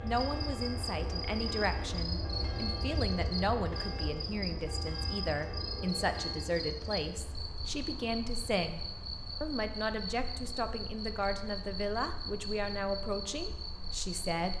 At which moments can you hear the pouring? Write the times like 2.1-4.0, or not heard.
not heard.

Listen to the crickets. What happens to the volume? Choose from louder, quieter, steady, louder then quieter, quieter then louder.
steady.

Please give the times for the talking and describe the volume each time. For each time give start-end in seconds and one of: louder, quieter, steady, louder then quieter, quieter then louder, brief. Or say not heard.
0.0-14.5 steady.